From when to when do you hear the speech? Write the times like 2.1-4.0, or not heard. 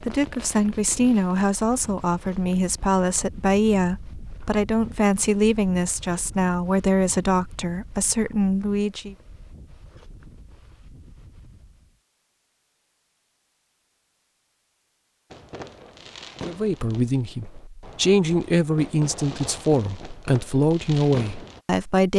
0.0-9.2, 16.4-22.1.